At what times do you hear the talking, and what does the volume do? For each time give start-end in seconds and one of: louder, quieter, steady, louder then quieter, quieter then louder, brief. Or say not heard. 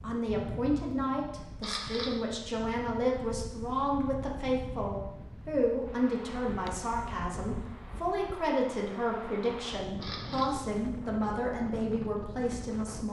0.0-13.0 steady.